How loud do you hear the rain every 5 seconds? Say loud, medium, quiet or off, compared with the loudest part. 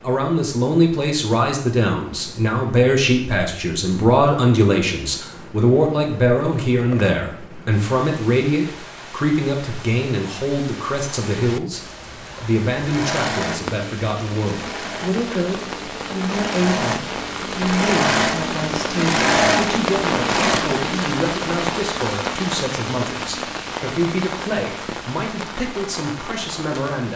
quiet, quiet, medium, loud, loud, medium.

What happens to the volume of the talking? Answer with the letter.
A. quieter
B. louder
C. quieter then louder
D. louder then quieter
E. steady
A.